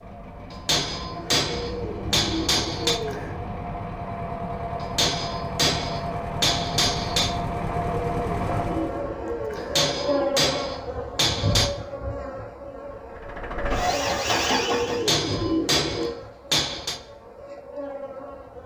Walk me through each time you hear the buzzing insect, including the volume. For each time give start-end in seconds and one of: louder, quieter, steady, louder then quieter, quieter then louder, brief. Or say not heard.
8.4-18.6 quieter.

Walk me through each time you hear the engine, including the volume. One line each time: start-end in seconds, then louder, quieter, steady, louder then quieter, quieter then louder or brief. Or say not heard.
0.0-9.1 louder
13.2-15.2 brief.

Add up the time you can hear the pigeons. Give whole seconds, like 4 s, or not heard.
7 s.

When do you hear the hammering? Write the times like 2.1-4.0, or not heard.
0.5-3.0, 4.8-7.4, 9.6-11.7, 14.9-17.0.